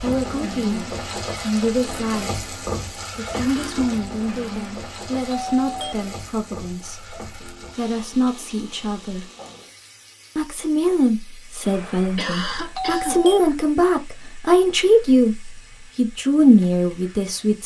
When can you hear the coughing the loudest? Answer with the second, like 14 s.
12 s.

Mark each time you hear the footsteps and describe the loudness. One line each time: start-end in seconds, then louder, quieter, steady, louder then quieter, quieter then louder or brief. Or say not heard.
not heard.